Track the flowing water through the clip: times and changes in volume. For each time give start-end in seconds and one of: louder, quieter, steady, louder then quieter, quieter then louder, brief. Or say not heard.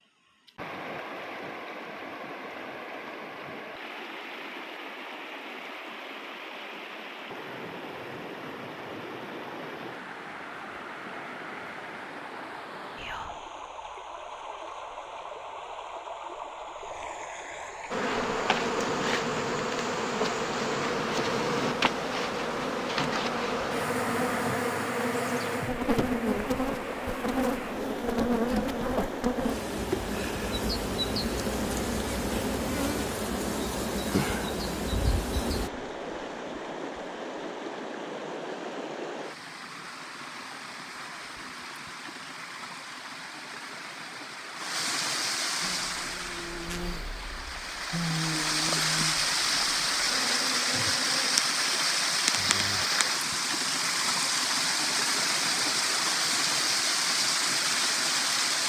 0.0-58.6 louder.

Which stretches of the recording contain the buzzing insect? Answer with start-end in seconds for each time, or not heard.
17.9-35.7, 45.6-51.4.